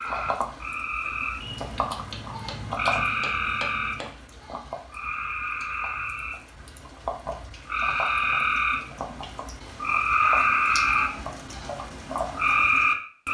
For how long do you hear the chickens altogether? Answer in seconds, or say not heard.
not heard.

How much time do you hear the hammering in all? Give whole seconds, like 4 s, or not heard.
3 s.